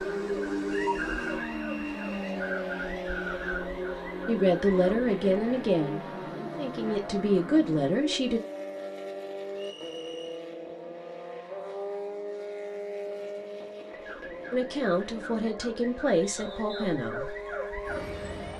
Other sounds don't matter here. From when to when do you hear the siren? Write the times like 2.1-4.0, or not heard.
0.0-5.1, 13.9-18.5.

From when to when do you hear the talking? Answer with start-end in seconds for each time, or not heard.
4.2-8.4, 14.5-17.4.